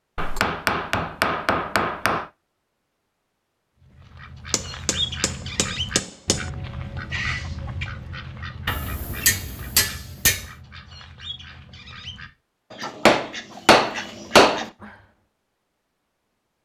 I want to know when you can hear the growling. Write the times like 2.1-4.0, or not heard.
7.1-7.6.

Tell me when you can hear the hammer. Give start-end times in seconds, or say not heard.
0.1-2.2, 4.5-6.5, 8.7-10.4, 13.1-14.7.